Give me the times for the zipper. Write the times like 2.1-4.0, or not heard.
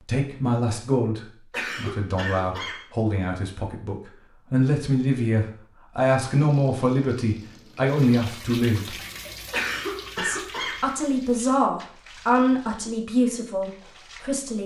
not heard.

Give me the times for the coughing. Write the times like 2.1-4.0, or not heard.
1.5-2.9, 9.5-10.8.